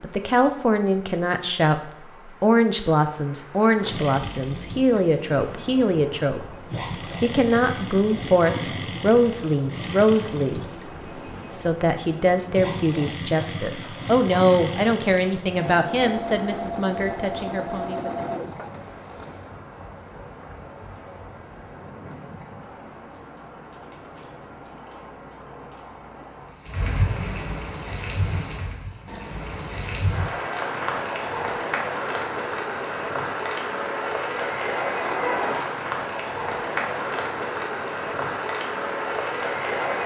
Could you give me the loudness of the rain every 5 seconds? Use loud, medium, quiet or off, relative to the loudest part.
quiet, quiet, quiet, quiet, quiet, medium, loud, loud.